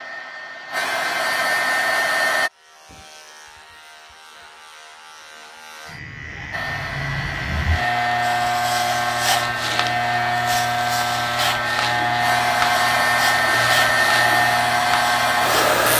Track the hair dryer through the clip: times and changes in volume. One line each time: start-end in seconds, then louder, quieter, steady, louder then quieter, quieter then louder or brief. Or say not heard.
0.0-2.5 brief
6.5-15.9 louder.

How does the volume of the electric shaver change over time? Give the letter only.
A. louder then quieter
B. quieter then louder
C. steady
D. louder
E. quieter
D.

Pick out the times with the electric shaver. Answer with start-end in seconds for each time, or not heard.
2.4-15.9.